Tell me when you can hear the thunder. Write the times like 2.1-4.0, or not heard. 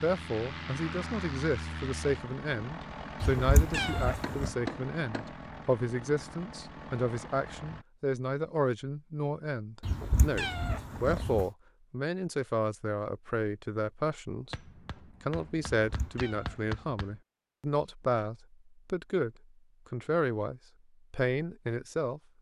not heard.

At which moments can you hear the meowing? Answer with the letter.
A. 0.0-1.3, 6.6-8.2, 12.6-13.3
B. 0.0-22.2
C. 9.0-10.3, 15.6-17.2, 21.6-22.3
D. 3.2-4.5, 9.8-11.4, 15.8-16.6
D.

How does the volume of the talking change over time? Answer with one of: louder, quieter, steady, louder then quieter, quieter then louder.
steady.